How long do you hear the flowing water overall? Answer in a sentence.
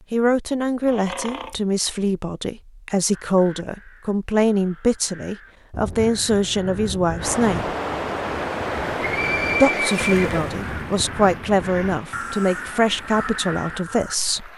The flowing water can be heard for 7 seconds in total.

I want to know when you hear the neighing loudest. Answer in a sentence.
The volume of the neighing peaks at 10 seconds.